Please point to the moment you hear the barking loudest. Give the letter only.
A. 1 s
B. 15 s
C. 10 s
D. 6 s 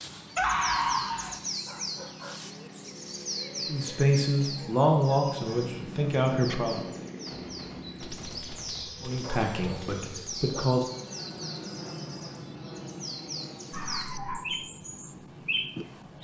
A.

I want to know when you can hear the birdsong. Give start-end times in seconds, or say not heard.
0.0-16.1.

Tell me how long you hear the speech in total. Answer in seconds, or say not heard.
5 s.